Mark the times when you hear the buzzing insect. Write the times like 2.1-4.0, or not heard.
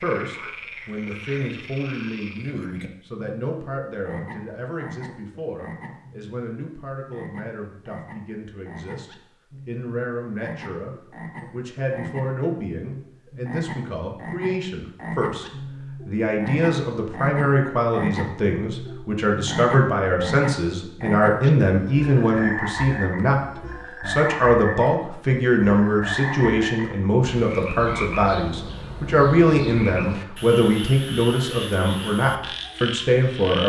not heard.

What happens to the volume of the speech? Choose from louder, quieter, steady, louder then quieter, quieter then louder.
louder.